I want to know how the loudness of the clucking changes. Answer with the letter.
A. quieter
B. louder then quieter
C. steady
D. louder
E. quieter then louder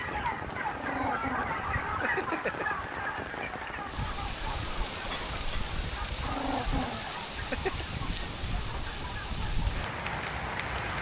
A.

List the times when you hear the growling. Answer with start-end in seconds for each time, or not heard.
0.8-2.6, 6.2-7.8.